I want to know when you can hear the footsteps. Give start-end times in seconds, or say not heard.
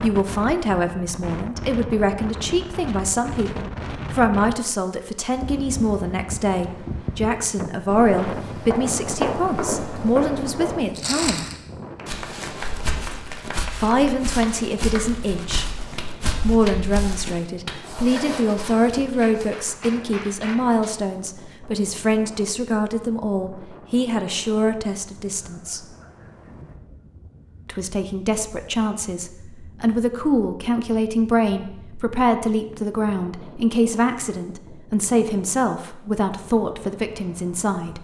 7.8-19.4.